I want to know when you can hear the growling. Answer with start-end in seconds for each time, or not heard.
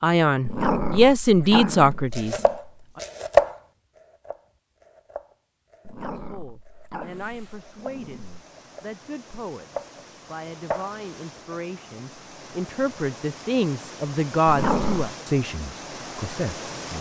0.5-2.5, 5.8-8.4, 14.4-15.2.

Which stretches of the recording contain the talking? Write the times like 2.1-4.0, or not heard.
0.0-2.4, 6.0-16.9.